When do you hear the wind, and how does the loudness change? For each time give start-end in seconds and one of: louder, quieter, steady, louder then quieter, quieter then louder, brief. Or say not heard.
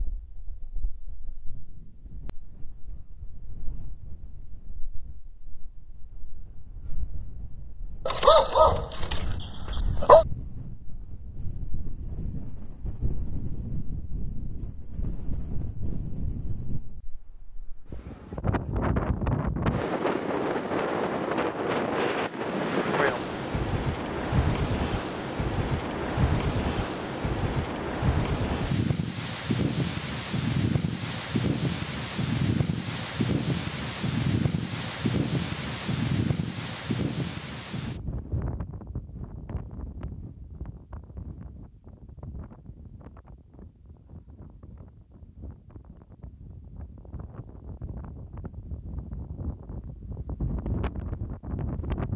0.0-52.1 louder then quieter.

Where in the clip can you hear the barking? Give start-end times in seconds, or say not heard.
8.1-10.2.